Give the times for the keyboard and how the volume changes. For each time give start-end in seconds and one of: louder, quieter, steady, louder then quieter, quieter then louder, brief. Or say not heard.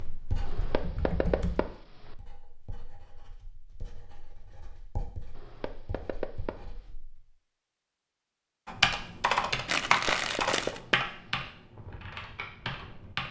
0.0-1.7 brief
8.7-13.2 quieter.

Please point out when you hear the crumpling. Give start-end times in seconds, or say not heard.
9.7-10.8.